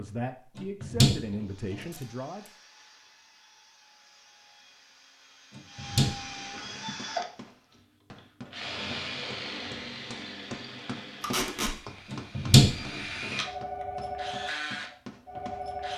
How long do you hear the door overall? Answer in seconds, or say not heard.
4 s.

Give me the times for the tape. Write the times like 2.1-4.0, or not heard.
1.8-2.5, 11.2-11.8.